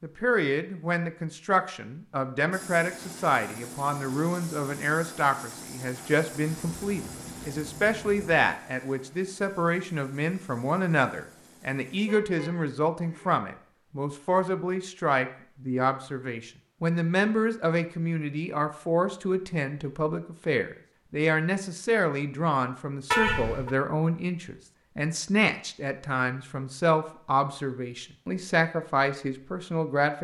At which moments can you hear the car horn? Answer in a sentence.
You can hear the car horn from 6.5 to 8.4 s, from 12.1 to 13.4 s and from 23.1 to 23.7 s.